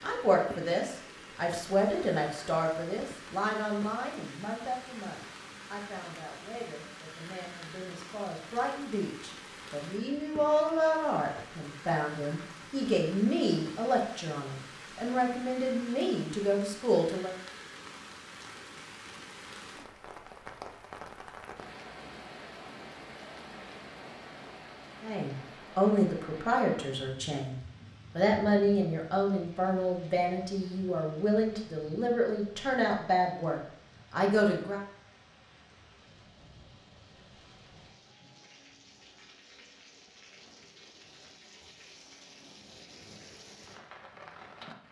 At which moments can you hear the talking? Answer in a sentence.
The talking can be heard from 0.0 to 17.4 s and from 25.0 to 34.8 s.